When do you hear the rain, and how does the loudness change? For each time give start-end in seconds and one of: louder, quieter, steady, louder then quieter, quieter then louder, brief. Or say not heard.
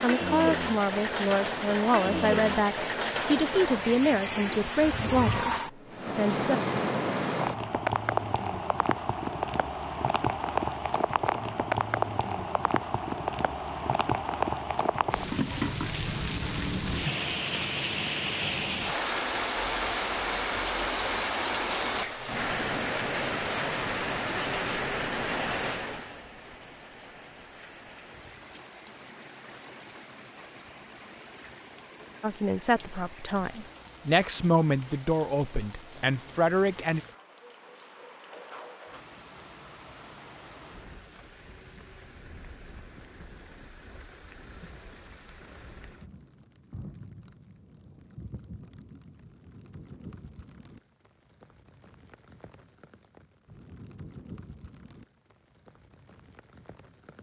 0.0-57.1 quieter.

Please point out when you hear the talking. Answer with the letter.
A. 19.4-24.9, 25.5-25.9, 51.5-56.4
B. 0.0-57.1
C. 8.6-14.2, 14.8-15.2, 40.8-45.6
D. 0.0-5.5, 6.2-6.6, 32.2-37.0
D.